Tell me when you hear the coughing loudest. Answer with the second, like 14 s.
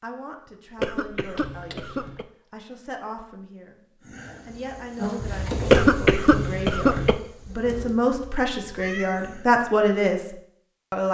6 s.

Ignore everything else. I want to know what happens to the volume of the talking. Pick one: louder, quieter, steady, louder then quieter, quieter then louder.
louder.